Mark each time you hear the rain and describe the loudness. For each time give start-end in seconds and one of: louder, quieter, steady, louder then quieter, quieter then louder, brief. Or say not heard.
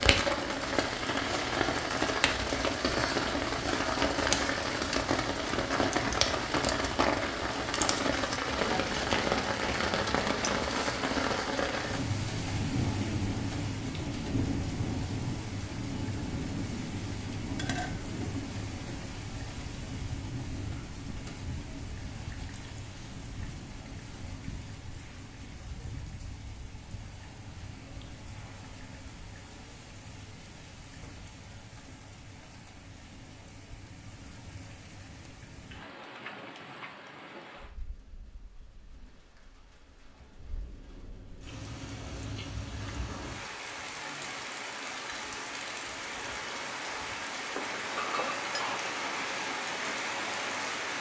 0.0-50.9 quieter then louder.